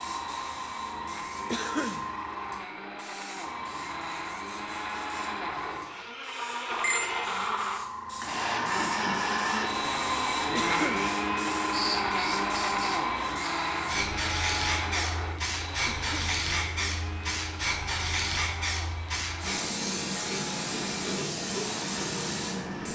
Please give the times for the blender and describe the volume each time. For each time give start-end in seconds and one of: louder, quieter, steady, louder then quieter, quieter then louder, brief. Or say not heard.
0.0-22.8 louder then quieter.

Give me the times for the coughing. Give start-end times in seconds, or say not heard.
1.5-2.0, 10.6-11.1, 15.8-16.4.